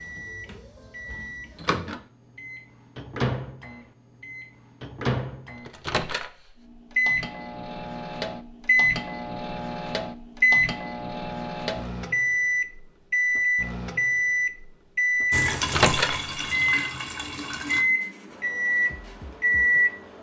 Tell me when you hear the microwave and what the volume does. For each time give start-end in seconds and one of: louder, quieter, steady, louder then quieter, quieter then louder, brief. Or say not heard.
0.0-20.1 louder.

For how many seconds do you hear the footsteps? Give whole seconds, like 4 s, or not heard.
not heard.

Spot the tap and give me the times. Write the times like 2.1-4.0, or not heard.
15.3-17.9.